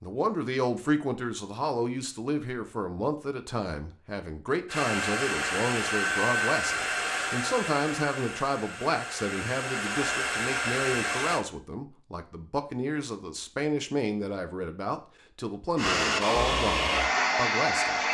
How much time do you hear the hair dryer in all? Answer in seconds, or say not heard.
9 s.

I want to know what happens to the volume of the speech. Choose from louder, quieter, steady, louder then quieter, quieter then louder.
steady.